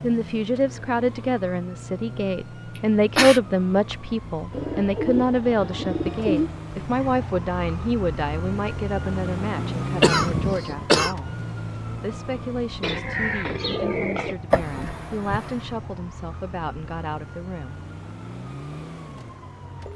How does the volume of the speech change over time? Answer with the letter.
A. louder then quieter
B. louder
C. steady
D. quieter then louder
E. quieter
E.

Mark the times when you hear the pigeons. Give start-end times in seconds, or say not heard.
4.5-6.5, 12.8-14.3.